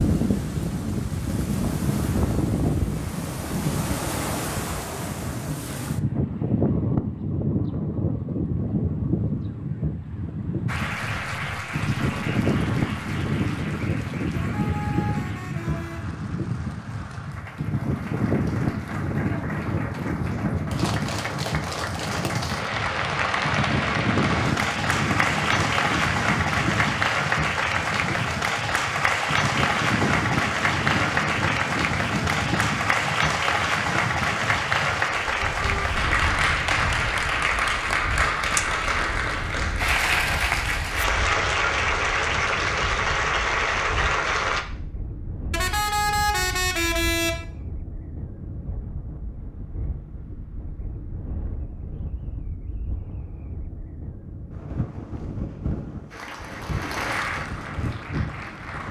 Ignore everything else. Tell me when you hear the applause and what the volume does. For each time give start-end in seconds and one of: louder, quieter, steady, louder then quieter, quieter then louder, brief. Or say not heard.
10.7-44.6 louder
56.1-58.8 brief.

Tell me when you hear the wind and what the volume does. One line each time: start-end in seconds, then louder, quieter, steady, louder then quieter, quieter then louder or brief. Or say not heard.
0.0-58.8 quieter.